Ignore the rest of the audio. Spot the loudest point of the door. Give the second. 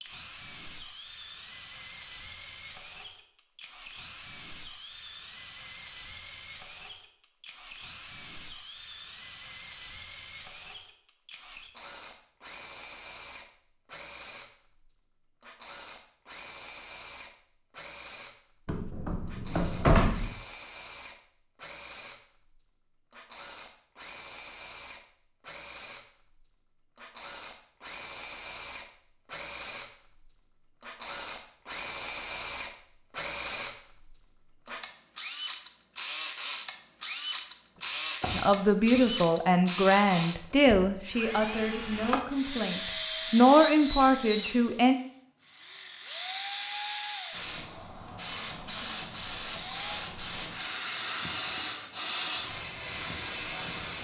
20 s.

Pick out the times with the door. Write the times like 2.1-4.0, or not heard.
18.6-20.4, 38.2-39.1.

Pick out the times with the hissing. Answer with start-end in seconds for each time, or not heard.
47.3-53.9.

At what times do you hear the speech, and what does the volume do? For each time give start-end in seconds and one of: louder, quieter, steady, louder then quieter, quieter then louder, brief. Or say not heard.
38.3-45.0 quieter then louder.